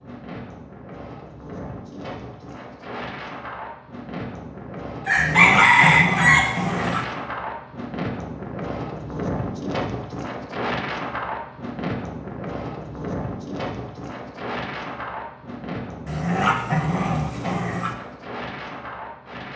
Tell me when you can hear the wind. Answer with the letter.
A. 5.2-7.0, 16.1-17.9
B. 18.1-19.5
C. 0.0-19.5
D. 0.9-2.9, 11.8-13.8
C.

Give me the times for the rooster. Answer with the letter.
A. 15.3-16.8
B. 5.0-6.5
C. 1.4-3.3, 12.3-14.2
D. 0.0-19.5
B.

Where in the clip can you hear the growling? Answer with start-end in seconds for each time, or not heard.
5.2-7.0, 16.1-17.9.